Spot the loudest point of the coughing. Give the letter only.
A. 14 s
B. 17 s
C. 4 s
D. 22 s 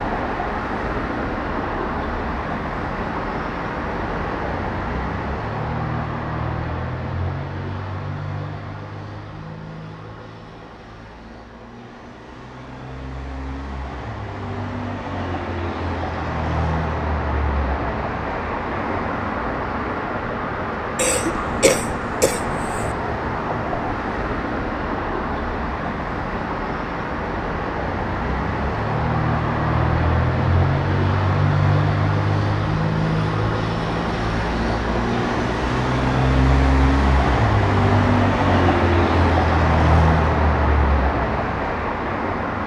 D.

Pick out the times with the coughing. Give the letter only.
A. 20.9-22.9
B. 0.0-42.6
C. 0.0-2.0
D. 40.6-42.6
A.